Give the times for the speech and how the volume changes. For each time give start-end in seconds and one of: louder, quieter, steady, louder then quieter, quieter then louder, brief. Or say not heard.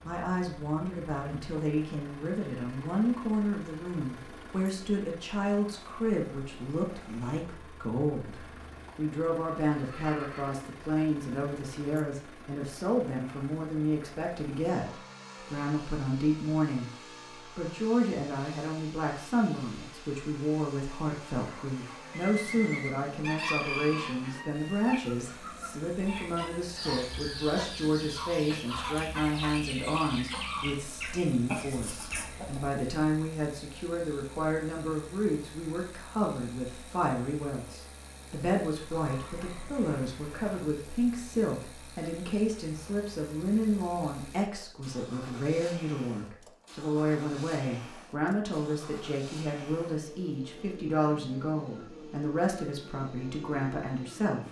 0.0-16.9 steady
17.6-54.4 steady.